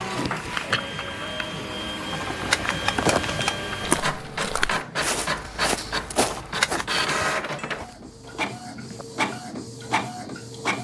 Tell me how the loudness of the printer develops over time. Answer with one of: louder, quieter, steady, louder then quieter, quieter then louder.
steady.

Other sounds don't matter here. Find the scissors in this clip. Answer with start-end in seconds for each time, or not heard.
2.1-3.5, 6.2-7.0.